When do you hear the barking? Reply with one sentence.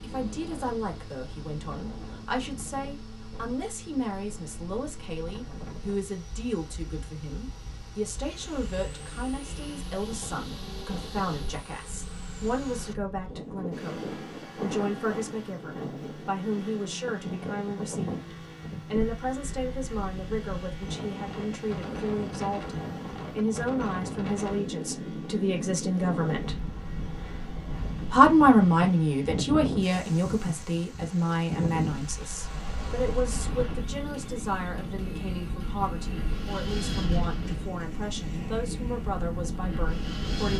You can't hear the barking here.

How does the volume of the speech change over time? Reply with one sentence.
The loudness of the speech goes up, then down.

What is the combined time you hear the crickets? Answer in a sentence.
You can't hear the crickets here.